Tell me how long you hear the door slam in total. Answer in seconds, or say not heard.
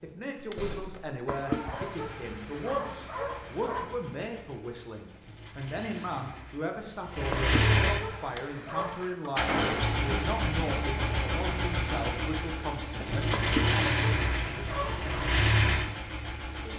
2 s.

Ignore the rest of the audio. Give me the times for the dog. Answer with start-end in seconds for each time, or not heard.
1.2-4.0, 7.3-9.2, 13.3-15.3.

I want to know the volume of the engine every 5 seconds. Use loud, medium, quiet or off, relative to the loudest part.
quiet, loud, loud, loud.